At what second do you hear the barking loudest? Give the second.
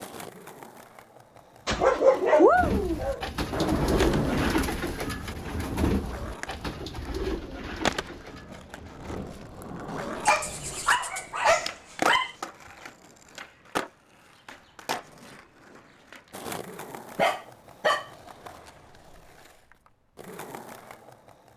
2 s.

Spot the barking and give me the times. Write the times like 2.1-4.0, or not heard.
1.6-3.2, 10.2-12.3, 17.1-18.1.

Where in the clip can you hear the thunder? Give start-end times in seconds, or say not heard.
3.5-4.5.